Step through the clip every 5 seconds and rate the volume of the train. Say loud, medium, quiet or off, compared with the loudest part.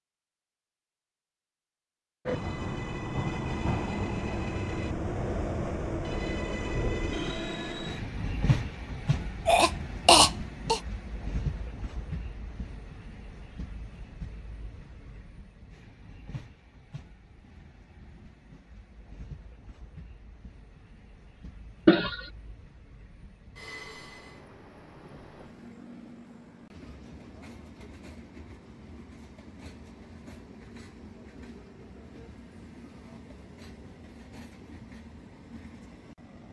loud, loud, medium, quiet, quiet, quiet, quiet, quiet.